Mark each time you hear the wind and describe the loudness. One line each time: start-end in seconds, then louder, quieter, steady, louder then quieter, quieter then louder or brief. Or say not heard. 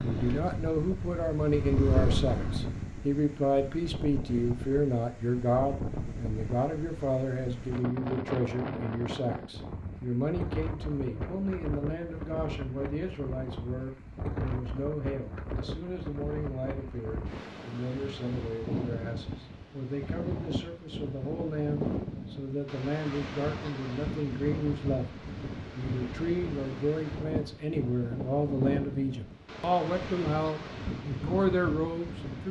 0.0-32.4 steady.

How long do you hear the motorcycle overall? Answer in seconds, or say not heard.
3 s.